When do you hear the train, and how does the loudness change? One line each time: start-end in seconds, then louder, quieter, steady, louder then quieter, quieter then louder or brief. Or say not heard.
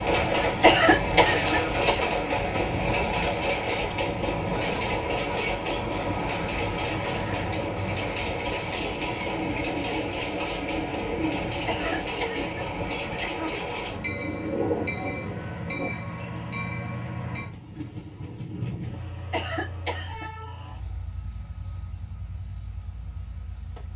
0.0-23.9 quieter.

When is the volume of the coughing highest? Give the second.
1 s.